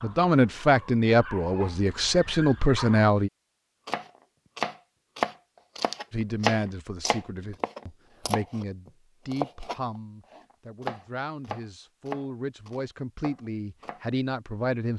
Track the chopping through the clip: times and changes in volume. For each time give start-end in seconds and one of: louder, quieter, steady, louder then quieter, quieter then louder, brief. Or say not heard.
3.9-14.1 quieter.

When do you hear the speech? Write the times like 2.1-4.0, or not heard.
0.0-3.3, 6.1-14.9.